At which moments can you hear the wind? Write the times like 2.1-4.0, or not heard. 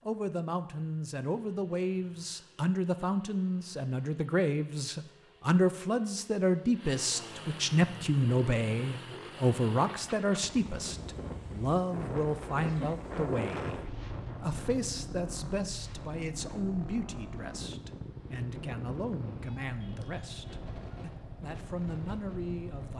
10.6-22.9.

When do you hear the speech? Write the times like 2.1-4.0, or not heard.
0.1-22.9.